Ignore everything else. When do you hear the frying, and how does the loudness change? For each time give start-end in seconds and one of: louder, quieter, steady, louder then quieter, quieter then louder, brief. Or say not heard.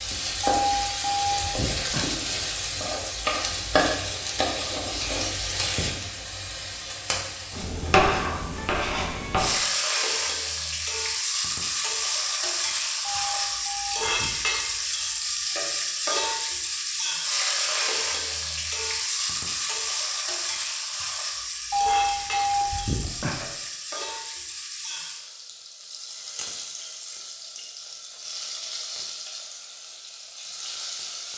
0.0-31.3 quieter.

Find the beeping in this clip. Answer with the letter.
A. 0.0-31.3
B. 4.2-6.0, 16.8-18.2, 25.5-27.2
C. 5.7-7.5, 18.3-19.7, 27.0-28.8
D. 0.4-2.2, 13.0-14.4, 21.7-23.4
D.